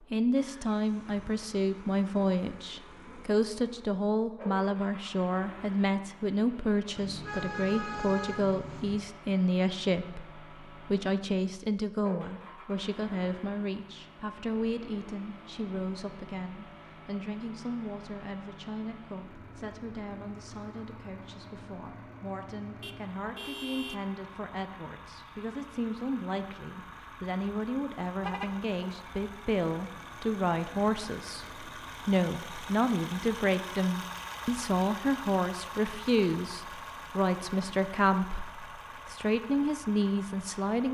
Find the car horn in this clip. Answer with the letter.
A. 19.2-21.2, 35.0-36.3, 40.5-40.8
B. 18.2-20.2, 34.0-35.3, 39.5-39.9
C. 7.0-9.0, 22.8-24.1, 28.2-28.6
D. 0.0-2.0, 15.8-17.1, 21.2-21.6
C.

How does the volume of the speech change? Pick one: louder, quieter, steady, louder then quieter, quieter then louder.
quieter then louder.